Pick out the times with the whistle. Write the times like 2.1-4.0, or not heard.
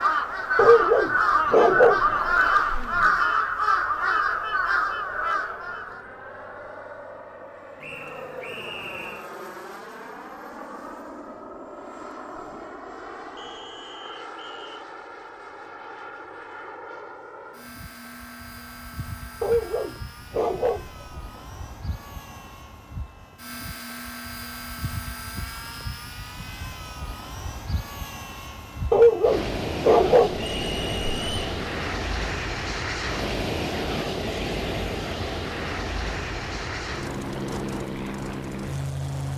7.8-9.3, 13.3-14.7, 30.6-31.4.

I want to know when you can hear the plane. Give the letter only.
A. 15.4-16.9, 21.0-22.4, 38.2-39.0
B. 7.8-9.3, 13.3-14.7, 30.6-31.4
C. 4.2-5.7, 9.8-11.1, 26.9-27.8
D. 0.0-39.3
D.